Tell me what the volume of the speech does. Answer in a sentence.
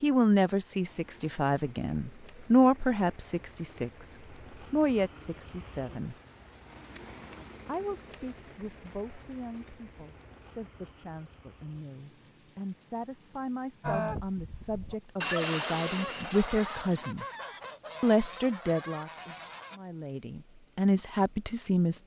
The volume of the speech goes down, then up.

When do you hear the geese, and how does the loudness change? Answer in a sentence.
You can hear the geese from 13.8 to 19.8 s, getting louder then quieter.